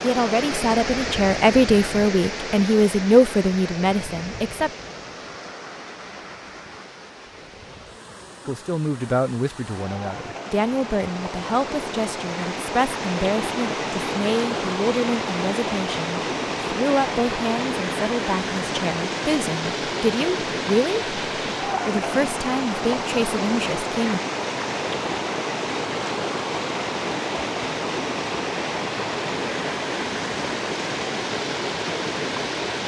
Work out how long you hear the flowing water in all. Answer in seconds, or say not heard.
33 s.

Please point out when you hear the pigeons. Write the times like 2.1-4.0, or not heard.
not heard.